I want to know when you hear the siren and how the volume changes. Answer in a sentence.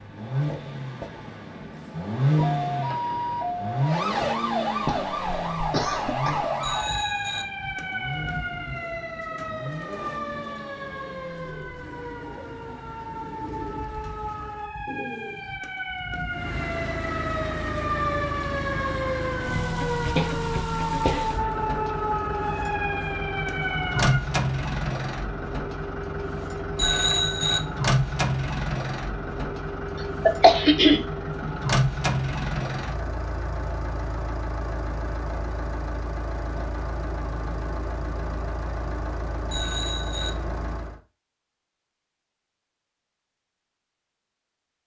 The siren can be heard from 2.4 to 24.2 s, getting quieter then louder.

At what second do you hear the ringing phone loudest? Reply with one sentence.
The loudest moment of the ringing phone is at 27 seconds.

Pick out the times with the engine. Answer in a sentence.
The engine can be heard from 0.0 to 14.7 s and from 16.2 to 41.0 s.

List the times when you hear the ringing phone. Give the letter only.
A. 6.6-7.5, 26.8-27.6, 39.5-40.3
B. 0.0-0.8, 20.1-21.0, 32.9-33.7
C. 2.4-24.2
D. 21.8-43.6
A.